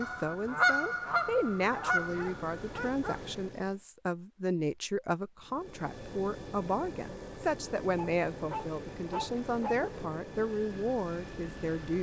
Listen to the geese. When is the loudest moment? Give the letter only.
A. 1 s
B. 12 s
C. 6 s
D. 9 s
A.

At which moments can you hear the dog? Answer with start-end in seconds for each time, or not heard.
1.6-3.2, 8.0-9.8.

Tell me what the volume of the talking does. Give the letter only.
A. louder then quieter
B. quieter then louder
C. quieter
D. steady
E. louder
D.